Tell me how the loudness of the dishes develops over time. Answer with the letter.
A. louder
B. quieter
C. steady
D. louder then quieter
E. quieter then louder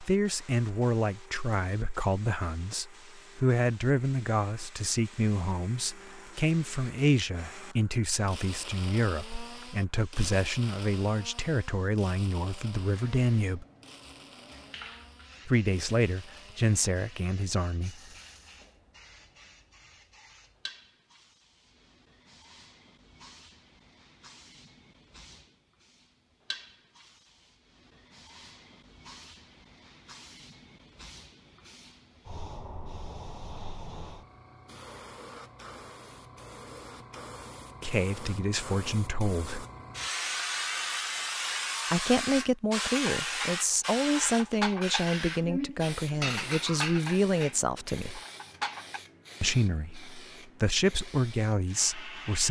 D.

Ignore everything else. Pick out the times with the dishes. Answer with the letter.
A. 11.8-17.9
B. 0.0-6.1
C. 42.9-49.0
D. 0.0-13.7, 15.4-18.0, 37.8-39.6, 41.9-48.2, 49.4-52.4
C.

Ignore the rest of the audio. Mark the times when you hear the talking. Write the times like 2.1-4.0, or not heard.
0.0-13.7, 15.4-18.0, 37.8-39.6, 41.9-48.2, 49.4-52.4.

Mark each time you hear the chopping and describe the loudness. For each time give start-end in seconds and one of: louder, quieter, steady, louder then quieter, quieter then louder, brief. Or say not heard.
not heard.